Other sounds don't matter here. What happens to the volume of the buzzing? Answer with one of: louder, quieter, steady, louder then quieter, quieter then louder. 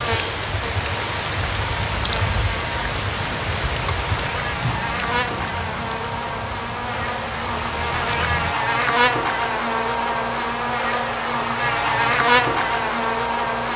louder.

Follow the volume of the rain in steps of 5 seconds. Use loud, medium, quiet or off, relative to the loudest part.
loud, medium, off.